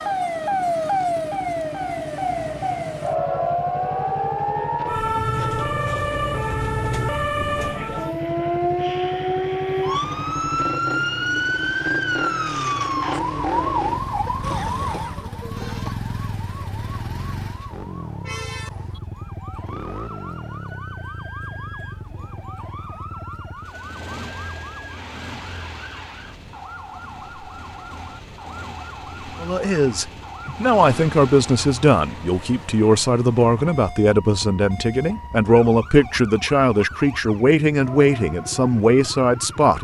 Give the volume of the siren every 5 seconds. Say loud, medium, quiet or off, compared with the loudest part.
loud, loud, loud, quiet, quiet, quiet, quiet, quiet.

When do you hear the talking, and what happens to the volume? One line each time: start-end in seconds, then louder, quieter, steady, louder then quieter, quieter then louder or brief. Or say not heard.
29.4-39.7 steady.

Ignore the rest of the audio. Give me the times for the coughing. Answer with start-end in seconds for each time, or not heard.
14.2-15.9.